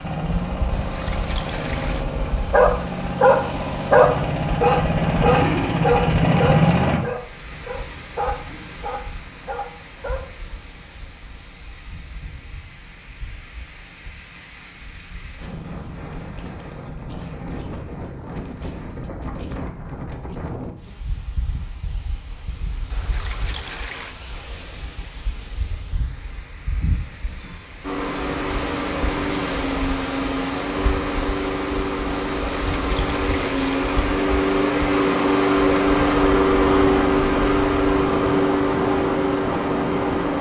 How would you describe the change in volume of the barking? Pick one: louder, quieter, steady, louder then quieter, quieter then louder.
quieter.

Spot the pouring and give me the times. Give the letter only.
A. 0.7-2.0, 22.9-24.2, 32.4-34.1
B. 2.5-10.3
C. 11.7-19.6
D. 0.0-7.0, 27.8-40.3
A.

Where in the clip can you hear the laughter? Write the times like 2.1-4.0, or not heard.
not heard.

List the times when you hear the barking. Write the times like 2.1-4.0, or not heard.
2.5-10.3.